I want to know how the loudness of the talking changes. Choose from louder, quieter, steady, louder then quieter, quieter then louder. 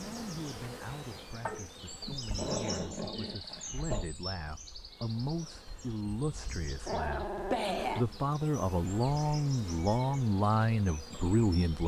louder.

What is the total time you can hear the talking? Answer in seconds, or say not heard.
12 s.